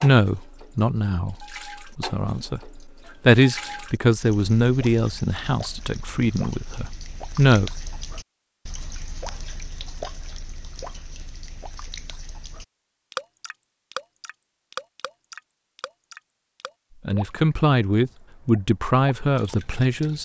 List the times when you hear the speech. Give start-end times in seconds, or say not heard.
0.0-7.7, 17.1-20.2.